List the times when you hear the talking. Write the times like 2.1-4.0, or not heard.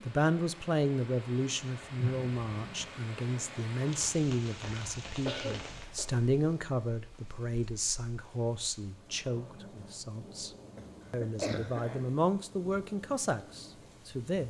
0.0-10.5, 11.1-14.4.